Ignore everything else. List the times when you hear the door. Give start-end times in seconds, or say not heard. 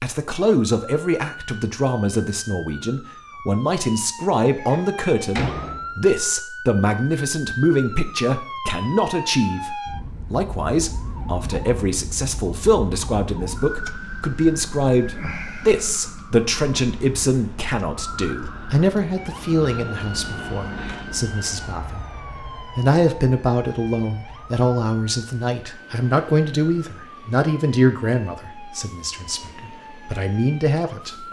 4.5-6.0.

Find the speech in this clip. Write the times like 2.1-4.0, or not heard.
0.0-22.0, 22.8-31.2.